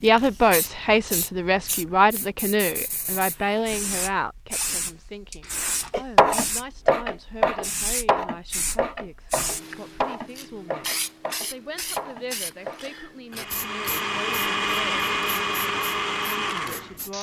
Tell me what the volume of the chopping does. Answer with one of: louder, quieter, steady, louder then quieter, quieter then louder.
quieter.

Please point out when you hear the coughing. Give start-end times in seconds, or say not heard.
5.4-6.0.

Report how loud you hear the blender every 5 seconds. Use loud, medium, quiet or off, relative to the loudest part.
off, off, loud, loud.